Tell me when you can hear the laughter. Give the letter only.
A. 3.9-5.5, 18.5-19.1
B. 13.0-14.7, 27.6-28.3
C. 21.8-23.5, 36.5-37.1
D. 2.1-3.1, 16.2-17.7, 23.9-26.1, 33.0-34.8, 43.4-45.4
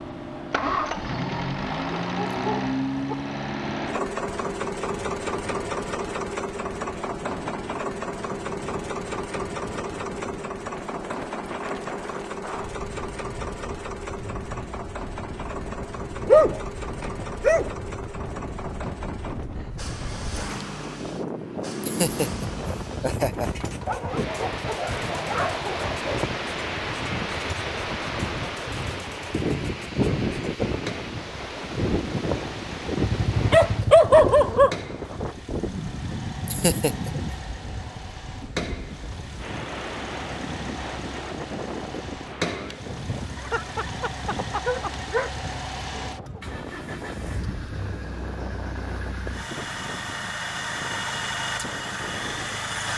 C.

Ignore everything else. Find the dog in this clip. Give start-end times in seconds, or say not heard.
2.1-3.1, 16.2-17.7, 23.9-26.1, 33.0-34.8, 43.4-45.4.